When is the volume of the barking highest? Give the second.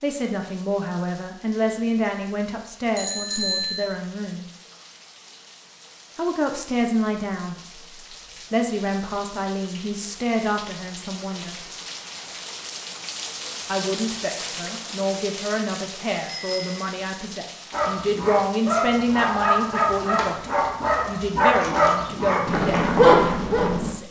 23 s.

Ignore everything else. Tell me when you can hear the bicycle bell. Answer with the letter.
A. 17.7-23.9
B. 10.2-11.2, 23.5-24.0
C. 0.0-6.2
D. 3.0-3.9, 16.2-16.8
D.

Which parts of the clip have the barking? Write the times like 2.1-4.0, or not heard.
17.7-23.9.